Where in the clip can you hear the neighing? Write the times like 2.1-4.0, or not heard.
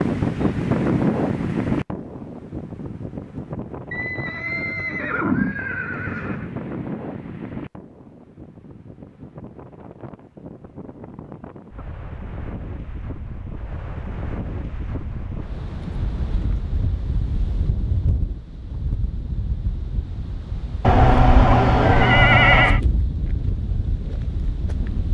3.9-6.5, 20.8-22.8.